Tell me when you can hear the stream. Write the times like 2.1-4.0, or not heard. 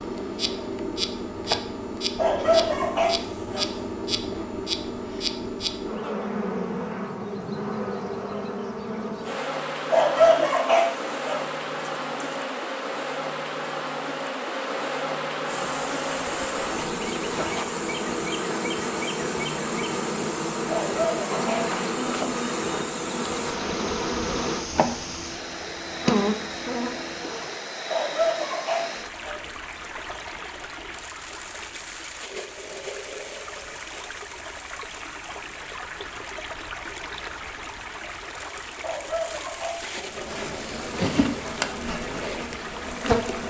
15.4-43.4.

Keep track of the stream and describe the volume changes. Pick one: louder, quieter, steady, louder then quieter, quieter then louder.
steady.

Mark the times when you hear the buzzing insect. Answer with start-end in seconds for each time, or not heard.
0.0-27.6, 40.0-43.4.